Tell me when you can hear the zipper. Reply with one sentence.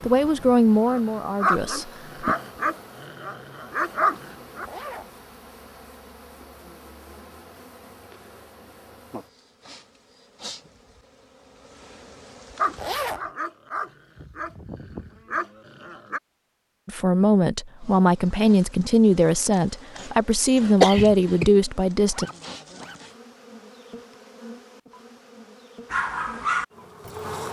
You can hear the zipper from 4.6 to 5.2 s, from 12.8 to 13.3 s and from 22.1 to 23.0 s.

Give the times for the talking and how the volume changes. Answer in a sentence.
You can hear the talking briefly from 0.0 to 2.4 s; and from 16.9 to 22.3 s, at a steady volume.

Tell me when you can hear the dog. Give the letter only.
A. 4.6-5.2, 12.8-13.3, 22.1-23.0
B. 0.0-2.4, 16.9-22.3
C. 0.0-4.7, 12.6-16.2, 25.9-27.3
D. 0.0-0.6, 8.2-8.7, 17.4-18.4
C.